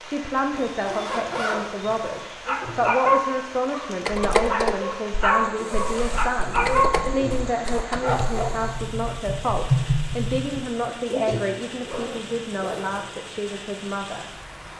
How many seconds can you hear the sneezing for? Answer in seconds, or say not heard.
3 s.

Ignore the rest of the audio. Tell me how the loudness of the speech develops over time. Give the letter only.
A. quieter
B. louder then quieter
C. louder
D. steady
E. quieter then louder
D.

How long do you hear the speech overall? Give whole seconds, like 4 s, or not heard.
14 s.